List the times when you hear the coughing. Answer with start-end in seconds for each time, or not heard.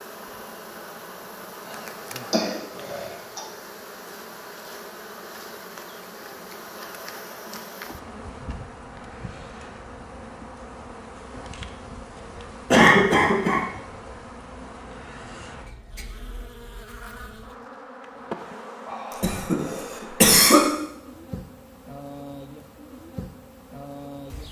2.3-3.4, 12.7-13.7, 19.2-20.6.